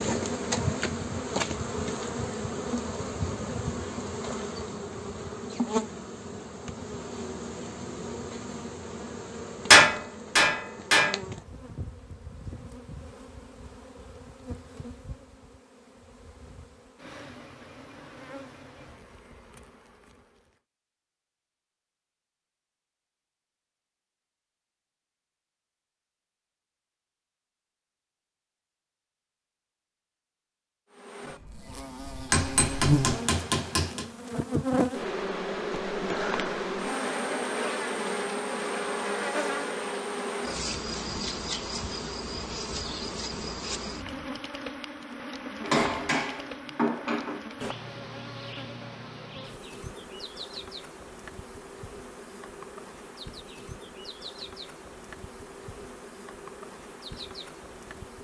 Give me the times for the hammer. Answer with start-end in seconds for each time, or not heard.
9.7-11.2, 32.3-34.0, 45.6-47.4.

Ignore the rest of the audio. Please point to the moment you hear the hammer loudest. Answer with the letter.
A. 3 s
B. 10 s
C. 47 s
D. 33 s
B.